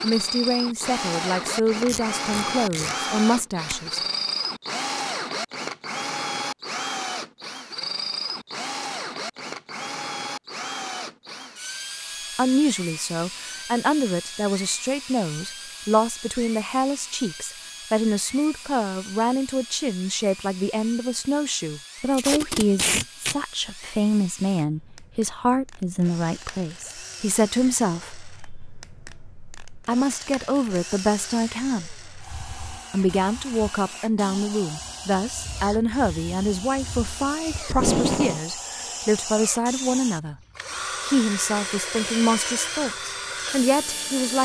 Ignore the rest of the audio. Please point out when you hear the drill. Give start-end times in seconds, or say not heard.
0.0-44.4.